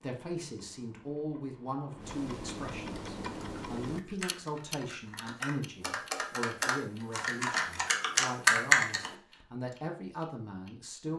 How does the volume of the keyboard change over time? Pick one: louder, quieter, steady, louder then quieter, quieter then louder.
louder.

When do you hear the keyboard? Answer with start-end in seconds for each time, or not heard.
3.0-9.1.